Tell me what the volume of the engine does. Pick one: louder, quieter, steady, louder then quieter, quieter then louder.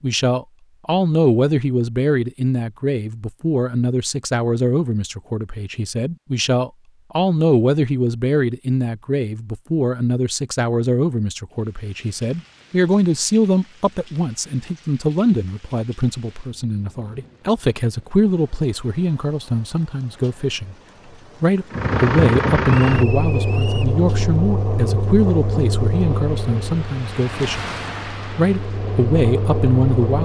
quieter then louder.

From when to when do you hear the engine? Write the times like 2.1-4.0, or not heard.
21.7-30.2.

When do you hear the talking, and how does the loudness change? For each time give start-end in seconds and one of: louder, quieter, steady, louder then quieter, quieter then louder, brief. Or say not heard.
0.0-20.8 steady
21.4-27.7 quieter
28.4-30.2 brief.